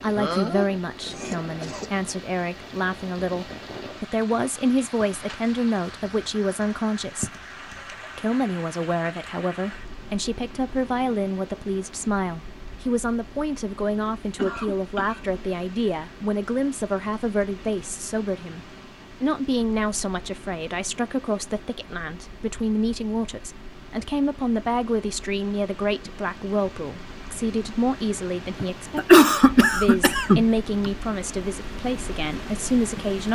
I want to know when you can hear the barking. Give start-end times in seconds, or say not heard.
not heard.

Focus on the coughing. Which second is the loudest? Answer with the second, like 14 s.
29 s.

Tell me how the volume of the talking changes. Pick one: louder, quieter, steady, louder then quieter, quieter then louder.
steady.